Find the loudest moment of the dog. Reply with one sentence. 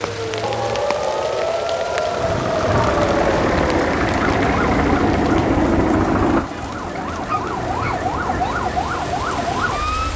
The loudest moment of the dog is at 7 seconds.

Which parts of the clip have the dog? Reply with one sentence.
The dog can be heard from 7.0 to 8.6 s.